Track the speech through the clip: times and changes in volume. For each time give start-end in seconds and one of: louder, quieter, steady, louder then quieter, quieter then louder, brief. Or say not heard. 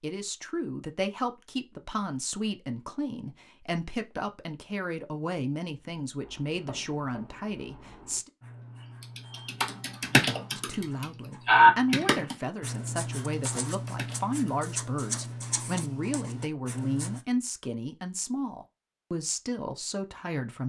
0.0-8.3 steady
10.6-20.6 steady.